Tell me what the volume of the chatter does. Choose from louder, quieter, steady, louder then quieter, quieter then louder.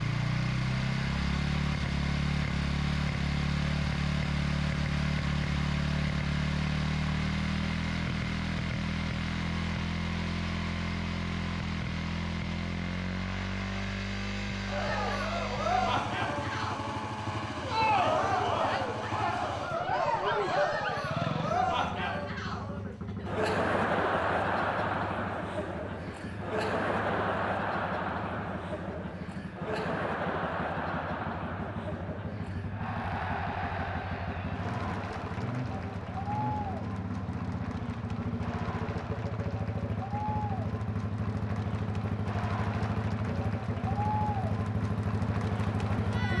quieter.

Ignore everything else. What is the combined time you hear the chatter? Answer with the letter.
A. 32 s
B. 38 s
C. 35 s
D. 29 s
A.